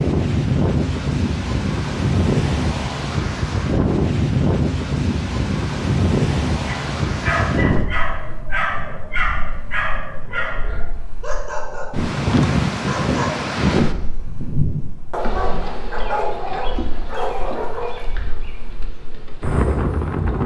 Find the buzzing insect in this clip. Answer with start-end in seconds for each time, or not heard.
15.2-20.4.